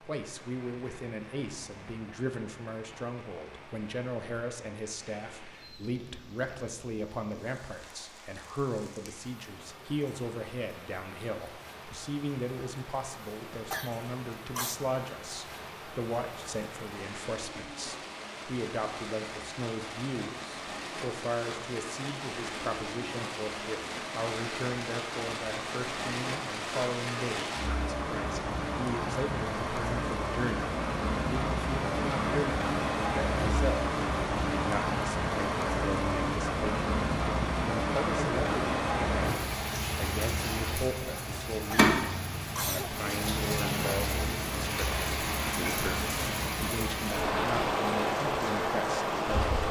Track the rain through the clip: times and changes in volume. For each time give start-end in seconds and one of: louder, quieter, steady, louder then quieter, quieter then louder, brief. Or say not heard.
0.0-49.6 louder.